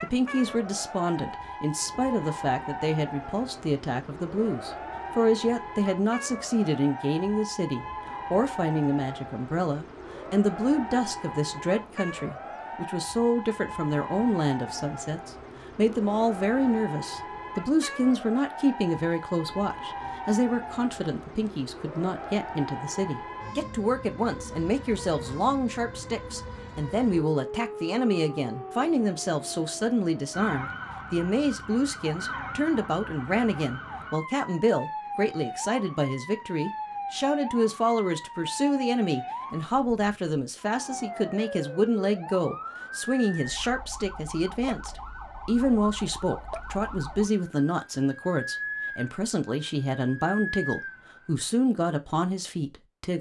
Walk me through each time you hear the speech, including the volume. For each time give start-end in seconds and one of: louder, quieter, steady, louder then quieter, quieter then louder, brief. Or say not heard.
0.0-53.1 steady.